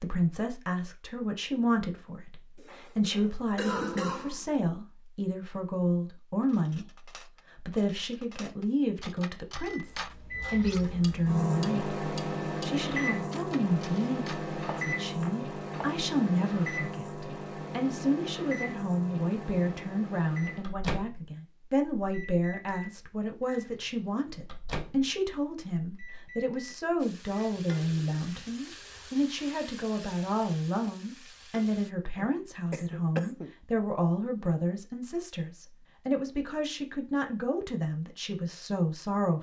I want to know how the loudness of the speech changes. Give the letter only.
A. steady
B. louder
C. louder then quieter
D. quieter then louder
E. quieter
A.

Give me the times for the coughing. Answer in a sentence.
The coughing can be heard from 2.5 to 4.5 s and from 32.1 to 33.5 s.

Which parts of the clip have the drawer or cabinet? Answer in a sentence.
You can't hear the drawer or cabinet here.